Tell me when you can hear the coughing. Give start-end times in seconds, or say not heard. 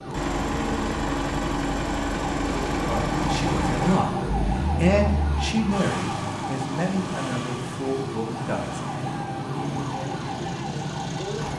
not heard.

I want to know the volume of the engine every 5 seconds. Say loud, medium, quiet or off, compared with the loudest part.
loud, medium, medium.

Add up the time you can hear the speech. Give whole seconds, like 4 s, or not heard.
6 s.